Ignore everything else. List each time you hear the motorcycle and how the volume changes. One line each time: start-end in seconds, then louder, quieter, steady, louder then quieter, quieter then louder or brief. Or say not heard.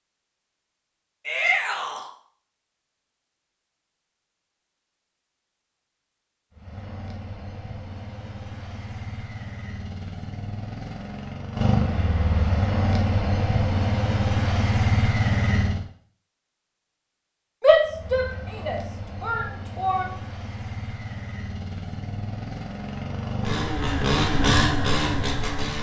6.5-15.8 louder
17.8-25.7 louder.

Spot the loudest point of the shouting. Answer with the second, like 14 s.
18 s.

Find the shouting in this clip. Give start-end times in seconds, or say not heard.
1.2-2.1, 17.6-20.1.